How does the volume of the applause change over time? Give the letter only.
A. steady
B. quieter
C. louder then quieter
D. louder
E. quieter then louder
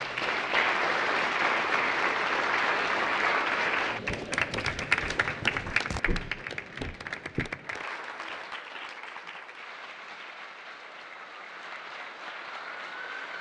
B.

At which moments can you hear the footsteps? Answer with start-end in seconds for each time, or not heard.
3.9-7.5.